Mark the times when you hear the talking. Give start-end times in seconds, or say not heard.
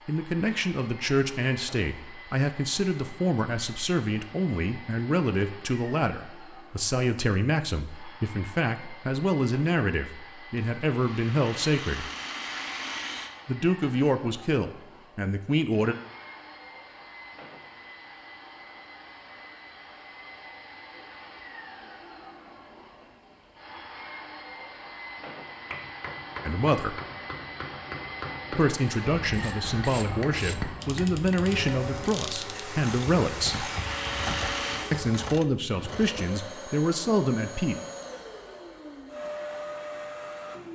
0.1-12.1, 13.4-15.9, 26.4-26.9, 28.5-33.7, 34.9-37.8.